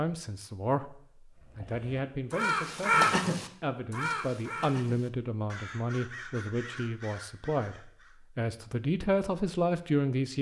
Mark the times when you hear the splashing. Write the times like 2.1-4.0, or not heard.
not heard.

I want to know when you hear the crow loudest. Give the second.
3 s.